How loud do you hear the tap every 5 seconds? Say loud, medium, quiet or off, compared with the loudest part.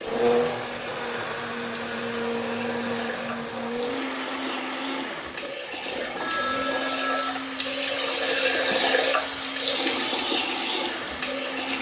medium, loud, loud.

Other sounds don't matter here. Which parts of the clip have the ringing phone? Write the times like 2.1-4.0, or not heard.
6.2-7.5.